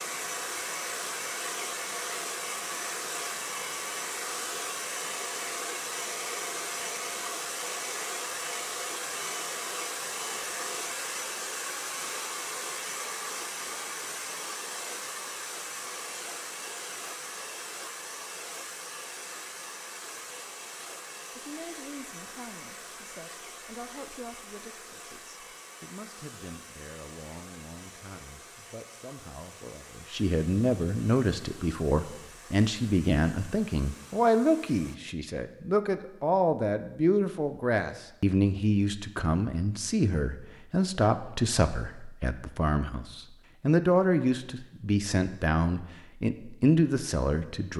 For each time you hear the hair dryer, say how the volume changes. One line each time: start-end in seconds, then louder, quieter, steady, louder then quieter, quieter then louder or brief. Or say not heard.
0.0-35.0 quieter.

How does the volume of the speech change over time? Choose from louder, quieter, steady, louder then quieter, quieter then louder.
louder.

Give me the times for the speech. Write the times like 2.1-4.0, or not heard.
21.4-47.7.